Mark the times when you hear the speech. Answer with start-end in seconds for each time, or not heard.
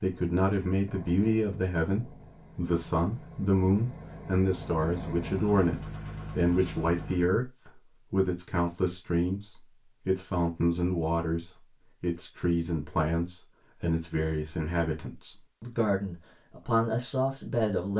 0.0-17.9.